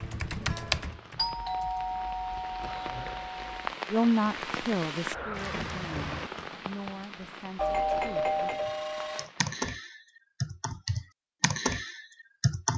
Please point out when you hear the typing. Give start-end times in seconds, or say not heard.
0.0-3.2, 8.7-12.7.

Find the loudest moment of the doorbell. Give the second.
8 s.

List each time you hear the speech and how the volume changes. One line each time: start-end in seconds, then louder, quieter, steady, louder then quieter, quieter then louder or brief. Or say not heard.
3.9-8.3 quieter.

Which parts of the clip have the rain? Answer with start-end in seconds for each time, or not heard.
0.0-9.6.